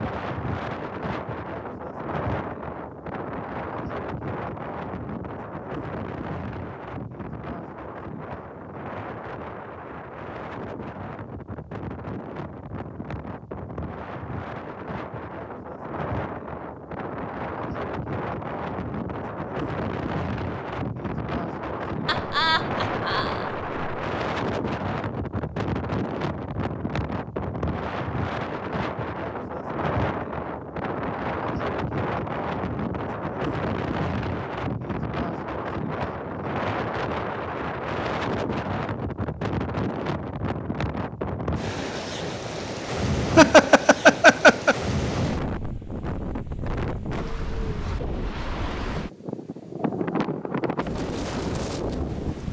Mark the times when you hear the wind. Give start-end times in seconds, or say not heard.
0.0-52.4.